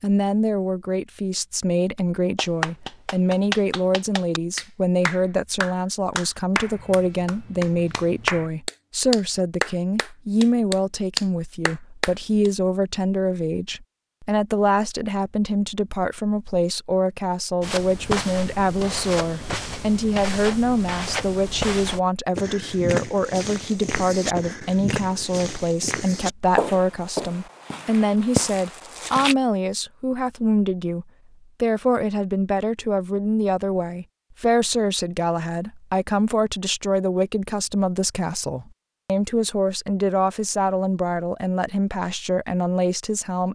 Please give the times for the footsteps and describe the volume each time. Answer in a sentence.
The footsteps can be heard from 17.6 to 29.4 s, at a steady volume.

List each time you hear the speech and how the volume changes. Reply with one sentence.
The speech can be heard from 0.0 to 43.4 s, at a steady volume.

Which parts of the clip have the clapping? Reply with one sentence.
The clapping can be heard from 2.4 to 12.5 s.